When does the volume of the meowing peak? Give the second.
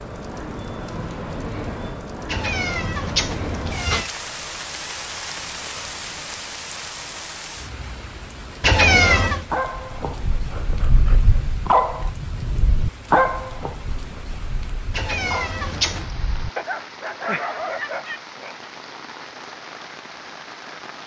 9 s.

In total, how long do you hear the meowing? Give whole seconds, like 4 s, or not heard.
4 s.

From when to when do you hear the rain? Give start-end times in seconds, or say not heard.
0.0-21.0.